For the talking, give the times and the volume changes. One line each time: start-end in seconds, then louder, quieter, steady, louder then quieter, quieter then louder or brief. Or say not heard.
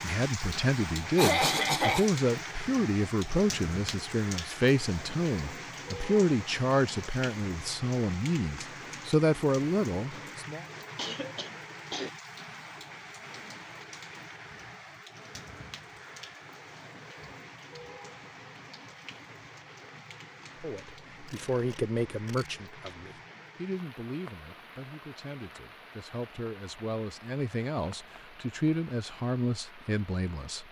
0.0-10.6 steady
20.6-30.6 quieter then louder.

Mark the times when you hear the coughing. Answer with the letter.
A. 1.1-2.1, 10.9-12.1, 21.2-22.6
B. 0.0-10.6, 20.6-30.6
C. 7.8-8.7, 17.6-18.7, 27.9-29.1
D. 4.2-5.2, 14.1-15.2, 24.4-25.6
A.